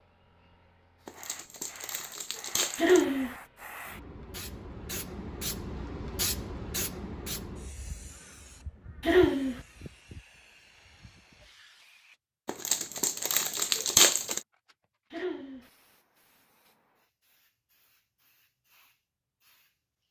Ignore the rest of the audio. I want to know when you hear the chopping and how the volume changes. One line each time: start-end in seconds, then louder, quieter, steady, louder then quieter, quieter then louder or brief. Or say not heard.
not heard.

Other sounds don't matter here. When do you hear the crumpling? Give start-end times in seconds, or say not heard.
1.1-3.0, 12.4-14.4.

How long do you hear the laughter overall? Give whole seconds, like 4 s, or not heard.
2 s.